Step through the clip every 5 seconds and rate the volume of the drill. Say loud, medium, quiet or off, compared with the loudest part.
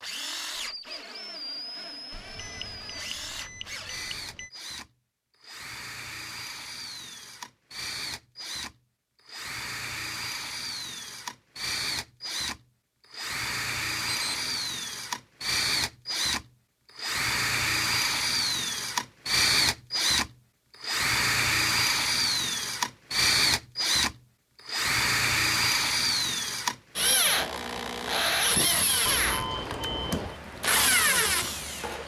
quiet, quiet, medium, loud, loud, loud, loud.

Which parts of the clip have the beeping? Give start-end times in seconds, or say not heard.
2.1-4.5, 14.1-14.6, 29.1-30.4.